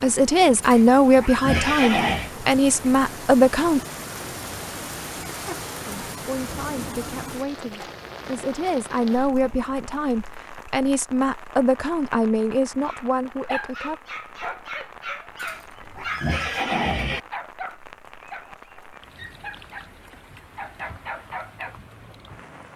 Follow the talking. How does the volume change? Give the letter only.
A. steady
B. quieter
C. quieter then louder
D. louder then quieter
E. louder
B.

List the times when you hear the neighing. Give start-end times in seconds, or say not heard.
0.6-2.3, 15.4-17.2.